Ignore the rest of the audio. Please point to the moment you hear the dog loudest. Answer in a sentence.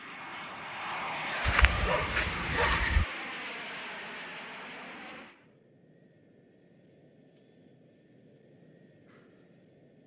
The volume of the dog peaks at 3 seconds.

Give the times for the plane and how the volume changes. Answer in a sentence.
The plane can be heard from 0.0 to 10.0 s, getting quieter.